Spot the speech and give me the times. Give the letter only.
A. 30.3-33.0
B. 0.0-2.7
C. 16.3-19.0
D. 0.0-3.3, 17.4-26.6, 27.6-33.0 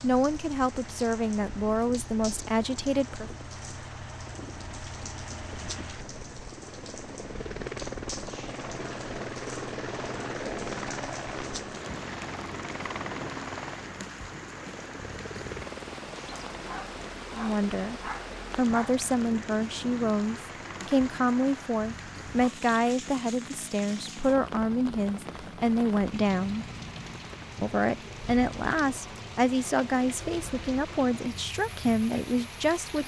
D.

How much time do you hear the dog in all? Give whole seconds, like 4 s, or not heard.
3 s.